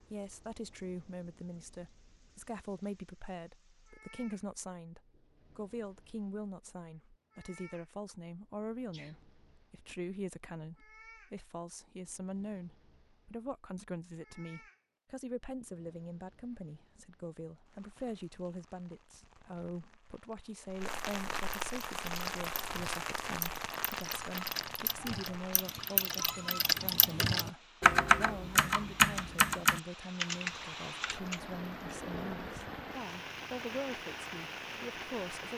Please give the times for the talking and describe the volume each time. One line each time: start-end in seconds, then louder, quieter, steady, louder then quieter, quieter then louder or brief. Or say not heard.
0.0-35.5 steady.